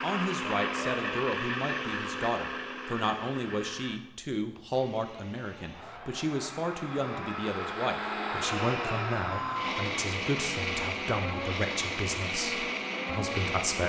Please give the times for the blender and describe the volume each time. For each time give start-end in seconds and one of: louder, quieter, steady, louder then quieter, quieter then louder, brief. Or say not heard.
0.0-13.8 quieter then louder.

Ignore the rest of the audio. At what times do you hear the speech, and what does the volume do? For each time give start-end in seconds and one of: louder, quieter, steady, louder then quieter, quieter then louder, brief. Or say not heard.
0.0-13.8 steady.